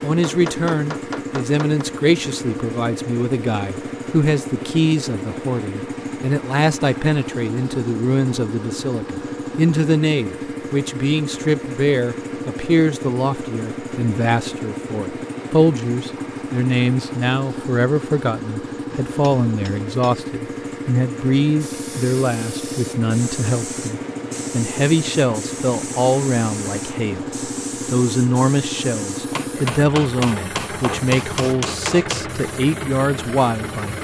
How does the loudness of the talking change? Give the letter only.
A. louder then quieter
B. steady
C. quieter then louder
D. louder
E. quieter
B.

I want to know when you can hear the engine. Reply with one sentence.
You can hear the engine from 0.0 to 33.9 s.